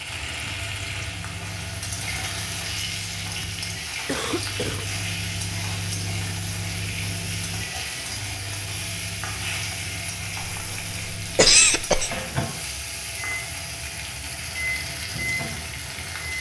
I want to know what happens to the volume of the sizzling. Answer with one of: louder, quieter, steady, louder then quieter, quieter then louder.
steady.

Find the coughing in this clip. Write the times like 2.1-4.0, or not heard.
4.0-4.8, 10.4-12.1.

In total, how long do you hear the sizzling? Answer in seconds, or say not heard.
16 s.